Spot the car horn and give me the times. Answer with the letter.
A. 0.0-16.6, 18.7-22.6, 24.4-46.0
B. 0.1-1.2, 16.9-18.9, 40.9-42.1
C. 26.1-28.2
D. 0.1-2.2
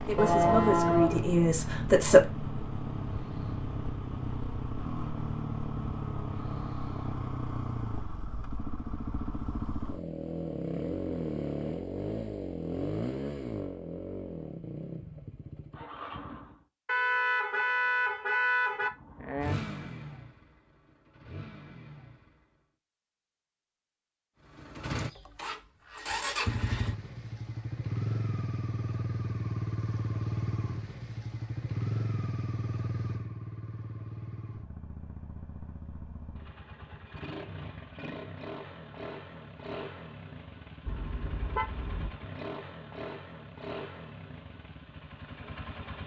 B.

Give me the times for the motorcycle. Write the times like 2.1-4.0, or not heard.
0.0-16.6, 18.7-22.6, 24.4-46.0.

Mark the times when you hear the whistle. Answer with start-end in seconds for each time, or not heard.
not heard.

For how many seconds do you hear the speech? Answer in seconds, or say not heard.
2 s.